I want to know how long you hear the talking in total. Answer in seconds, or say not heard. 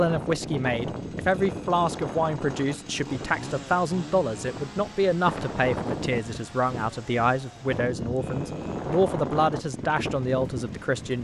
11 s.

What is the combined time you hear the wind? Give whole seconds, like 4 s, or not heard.
11 s.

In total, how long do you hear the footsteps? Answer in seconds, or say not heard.
not heard.